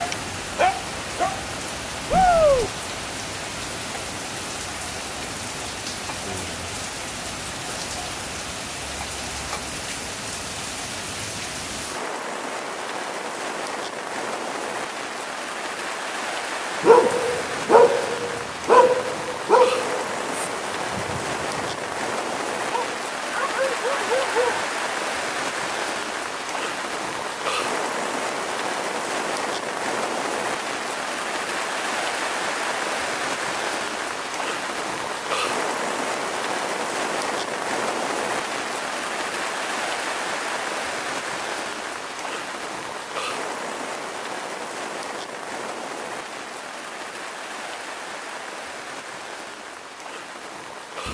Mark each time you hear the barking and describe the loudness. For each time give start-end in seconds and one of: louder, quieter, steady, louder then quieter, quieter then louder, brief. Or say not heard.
0.0-1.4 brief
16.8-24.6 quieter then louder.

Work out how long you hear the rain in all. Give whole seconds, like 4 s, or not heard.
51 s.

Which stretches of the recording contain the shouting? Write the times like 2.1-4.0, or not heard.
2.1-2.7.